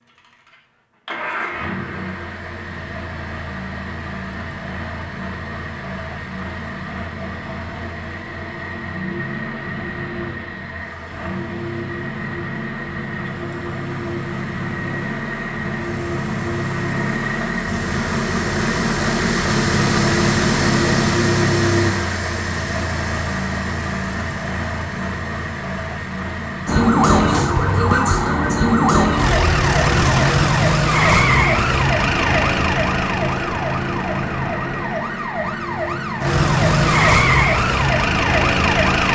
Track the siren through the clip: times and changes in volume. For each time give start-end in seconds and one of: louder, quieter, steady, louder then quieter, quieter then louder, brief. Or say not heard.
26.6-39.1 quieter then louder.